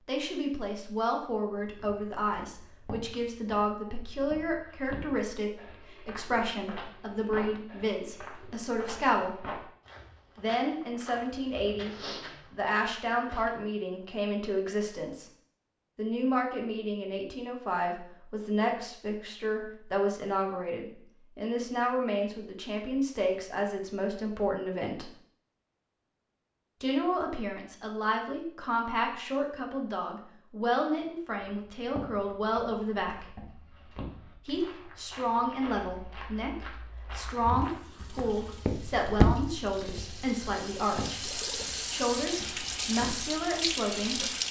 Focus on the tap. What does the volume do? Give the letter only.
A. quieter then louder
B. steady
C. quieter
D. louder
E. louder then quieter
D.